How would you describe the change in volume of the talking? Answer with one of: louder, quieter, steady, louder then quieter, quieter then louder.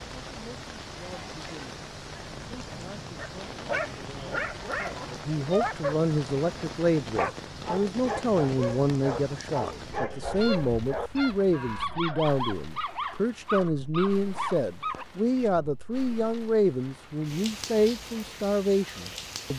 louder.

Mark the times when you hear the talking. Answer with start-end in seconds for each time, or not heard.
0.2-19.5.